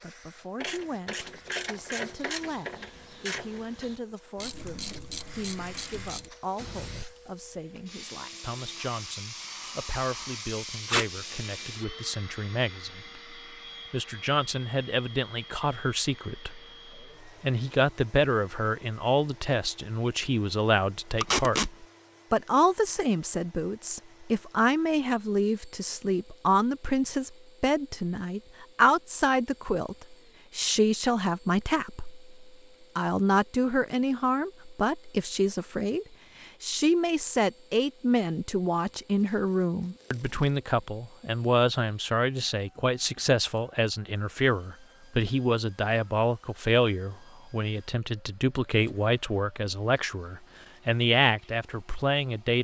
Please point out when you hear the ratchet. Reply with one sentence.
The ratchet can be heard from 0.6 to 7.0 s.